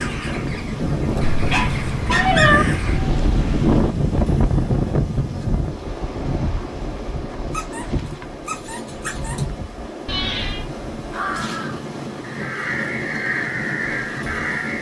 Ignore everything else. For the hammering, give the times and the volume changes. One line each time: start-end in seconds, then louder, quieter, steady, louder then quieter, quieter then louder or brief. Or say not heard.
not heard.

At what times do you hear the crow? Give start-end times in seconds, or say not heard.
0.0-3.0, 10.9-14.7.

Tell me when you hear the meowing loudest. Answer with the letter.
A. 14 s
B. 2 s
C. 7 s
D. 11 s
B.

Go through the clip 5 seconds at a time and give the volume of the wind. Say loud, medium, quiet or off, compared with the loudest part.
loud, medium, medium.